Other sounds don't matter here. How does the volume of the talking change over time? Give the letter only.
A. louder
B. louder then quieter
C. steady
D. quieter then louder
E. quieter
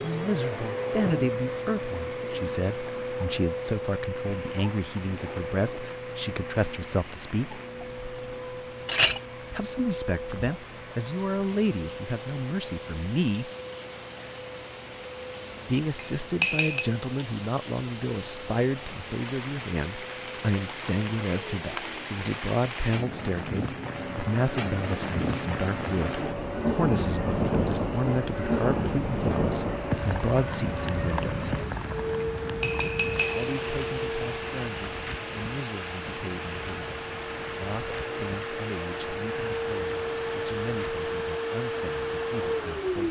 E.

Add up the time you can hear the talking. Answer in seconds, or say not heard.
37 s.